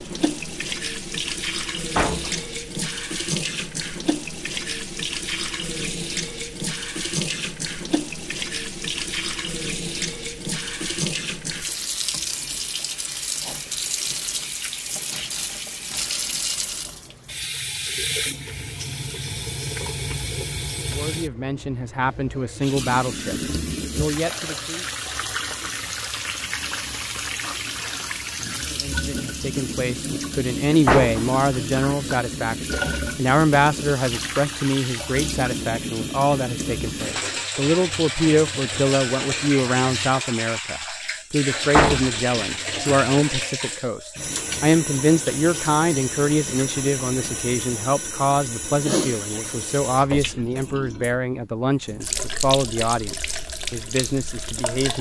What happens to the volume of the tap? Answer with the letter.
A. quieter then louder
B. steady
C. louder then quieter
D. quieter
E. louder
B.